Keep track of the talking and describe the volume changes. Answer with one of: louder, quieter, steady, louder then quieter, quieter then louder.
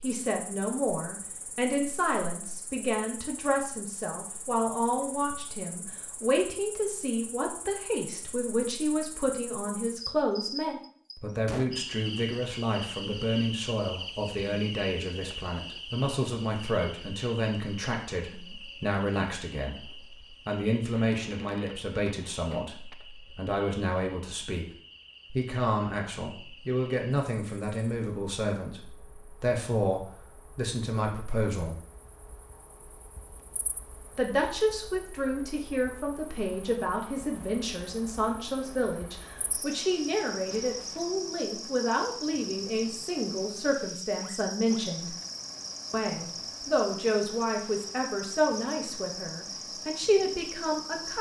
steady.